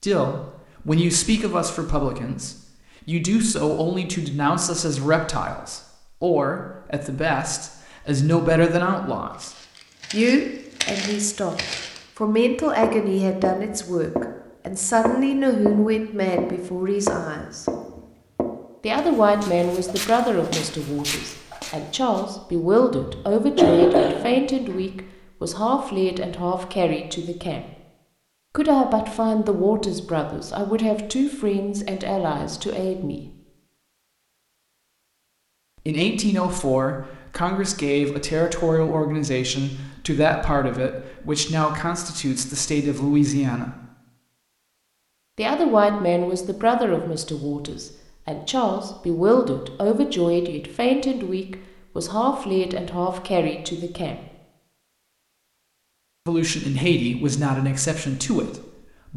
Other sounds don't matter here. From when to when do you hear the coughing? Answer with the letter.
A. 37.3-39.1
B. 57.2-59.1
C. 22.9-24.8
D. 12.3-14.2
C.